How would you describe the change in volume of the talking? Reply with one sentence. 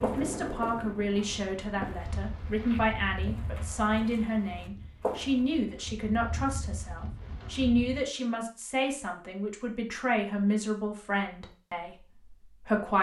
The loudness of the talking stays about the same.